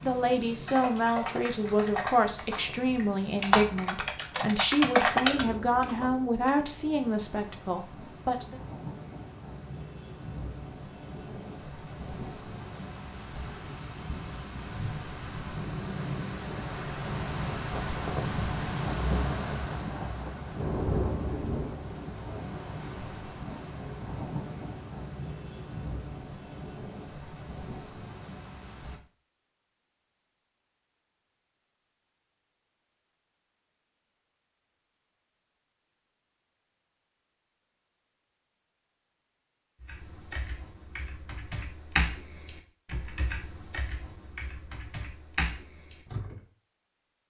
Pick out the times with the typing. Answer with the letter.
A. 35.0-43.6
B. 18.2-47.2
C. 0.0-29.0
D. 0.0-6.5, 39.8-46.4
D.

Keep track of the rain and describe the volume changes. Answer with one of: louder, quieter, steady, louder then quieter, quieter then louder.
louder then quieter.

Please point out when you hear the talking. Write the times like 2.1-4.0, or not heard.
0.0-8.6.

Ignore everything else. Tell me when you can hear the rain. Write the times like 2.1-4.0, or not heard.
0.0-29.0.